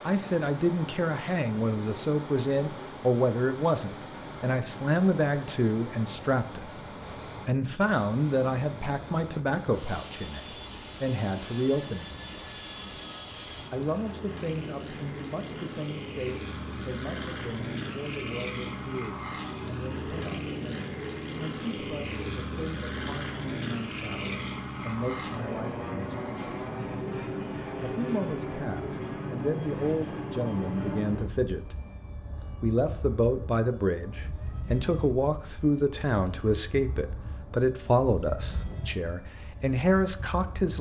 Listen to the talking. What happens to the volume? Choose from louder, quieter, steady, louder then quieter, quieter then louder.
quieter then louder.